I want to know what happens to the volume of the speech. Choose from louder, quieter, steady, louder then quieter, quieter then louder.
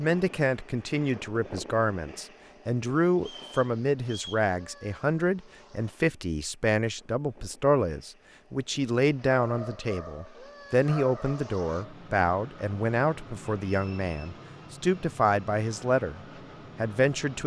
steady.